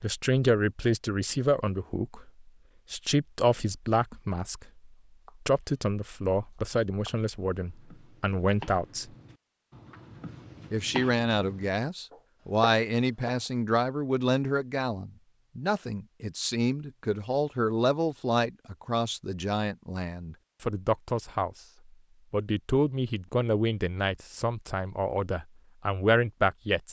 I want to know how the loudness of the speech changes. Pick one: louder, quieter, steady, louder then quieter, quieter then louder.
steady.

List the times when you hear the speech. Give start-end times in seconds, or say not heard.
0.0-9.1, 10.7-21.6, 22.3-26.8.